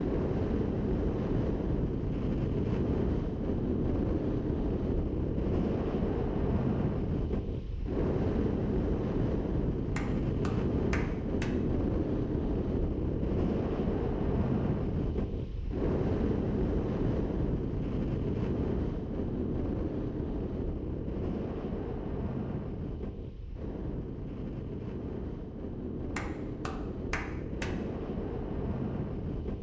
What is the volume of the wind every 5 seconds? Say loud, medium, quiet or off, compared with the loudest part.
loud, loud, loud, loud, medium, medium.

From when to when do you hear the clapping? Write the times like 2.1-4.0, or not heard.
9.9-11.5, 26.1-27.7.